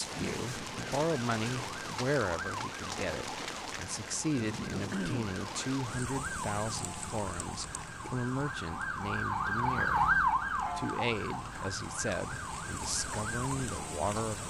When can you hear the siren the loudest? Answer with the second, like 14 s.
10 s.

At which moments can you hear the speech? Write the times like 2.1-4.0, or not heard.
0.0-14.4.